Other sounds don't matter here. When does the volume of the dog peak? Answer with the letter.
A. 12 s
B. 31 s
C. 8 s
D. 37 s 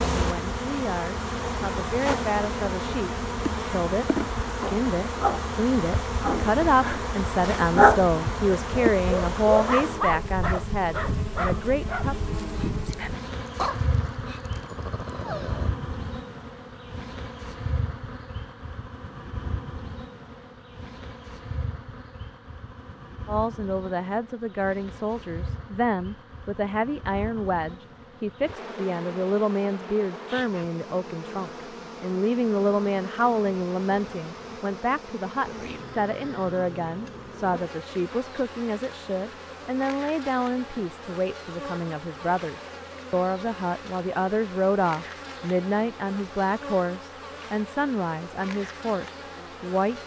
C.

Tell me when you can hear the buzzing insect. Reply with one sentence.
The buzzing insect can be heard from 0.0 to 50.0 s.